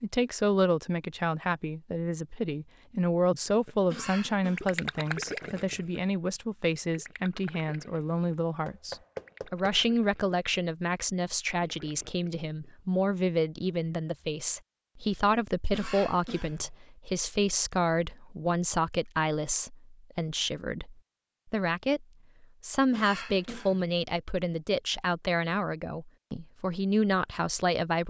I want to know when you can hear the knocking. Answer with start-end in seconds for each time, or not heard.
8.7-9.8.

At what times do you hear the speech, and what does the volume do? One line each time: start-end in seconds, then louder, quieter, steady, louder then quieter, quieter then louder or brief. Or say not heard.
0.0-28.0 steady.